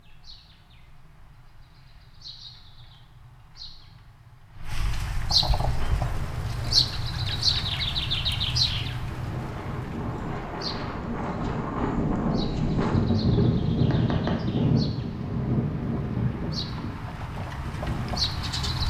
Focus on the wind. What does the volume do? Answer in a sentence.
The loudness of the wind goes up, then down.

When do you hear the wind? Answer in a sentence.
You can hear the wind from 5.6 to 18.8 s.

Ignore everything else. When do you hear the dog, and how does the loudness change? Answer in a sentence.
The dog can't be heard in this clip.